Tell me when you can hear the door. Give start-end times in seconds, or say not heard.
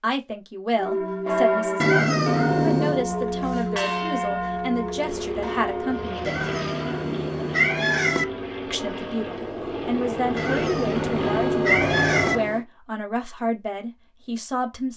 not heard.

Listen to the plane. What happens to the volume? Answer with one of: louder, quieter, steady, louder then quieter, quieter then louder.
louder.